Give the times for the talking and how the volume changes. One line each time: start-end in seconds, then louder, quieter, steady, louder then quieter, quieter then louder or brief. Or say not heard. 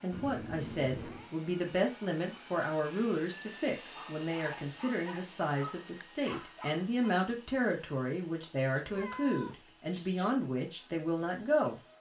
0.0-11.8 steady.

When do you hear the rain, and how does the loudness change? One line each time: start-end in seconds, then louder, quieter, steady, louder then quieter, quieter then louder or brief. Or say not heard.
not heard.